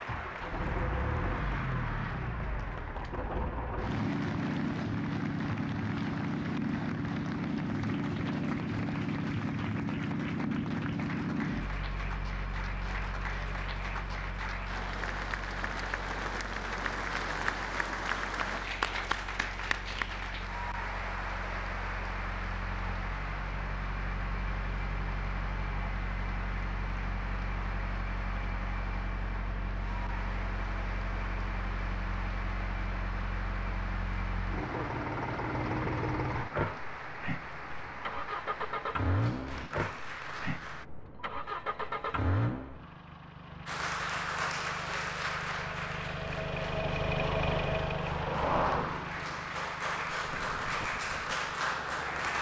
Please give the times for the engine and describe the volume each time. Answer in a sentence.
The engine can be heard from 0.0 to 52.3 s, getting quieter then louder.